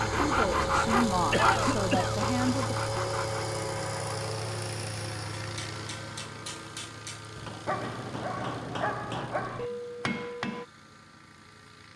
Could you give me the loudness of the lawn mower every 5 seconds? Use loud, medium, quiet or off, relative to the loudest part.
loud, medium, quiet.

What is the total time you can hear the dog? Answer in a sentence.
You can hear the dog for 2 seconds altogether.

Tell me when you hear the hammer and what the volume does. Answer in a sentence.
You can hear the hammer from 5.4 to 10.7 s, getting louder.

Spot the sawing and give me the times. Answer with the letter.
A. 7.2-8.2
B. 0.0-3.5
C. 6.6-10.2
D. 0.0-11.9
B.